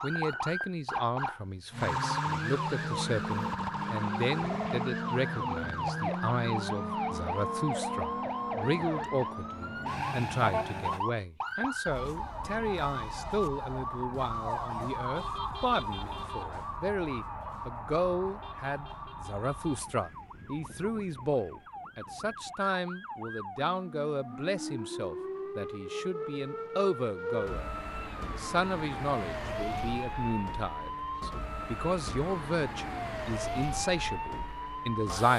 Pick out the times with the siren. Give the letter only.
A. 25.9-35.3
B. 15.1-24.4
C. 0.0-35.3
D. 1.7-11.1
C.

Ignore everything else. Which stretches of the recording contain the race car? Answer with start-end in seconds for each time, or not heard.
1.7-11.1.